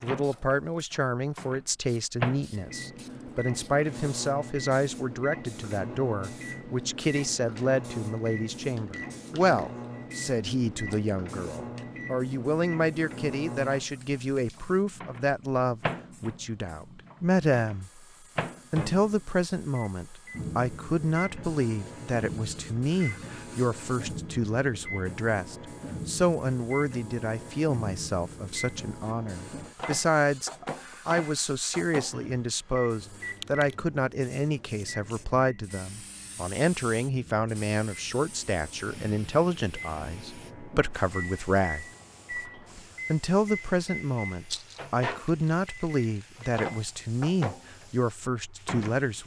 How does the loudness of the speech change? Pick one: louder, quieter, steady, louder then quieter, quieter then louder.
steady.